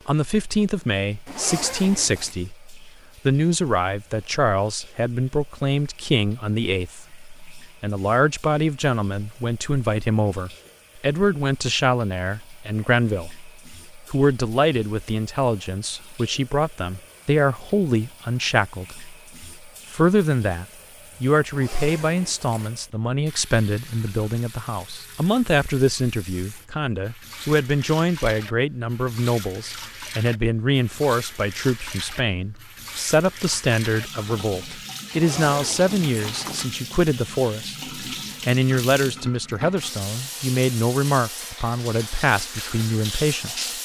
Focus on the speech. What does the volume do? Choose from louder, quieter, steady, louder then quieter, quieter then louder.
steady.